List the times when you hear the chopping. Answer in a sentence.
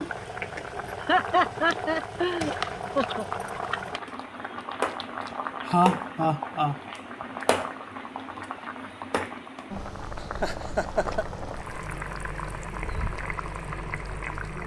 The chopping can't be heard in this clip.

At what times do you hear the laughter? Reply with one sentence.
You can hear the laughter from 1.0 to 3.2 s, from 5.7 to 6.8 s and from 10.2 to 11.2 s.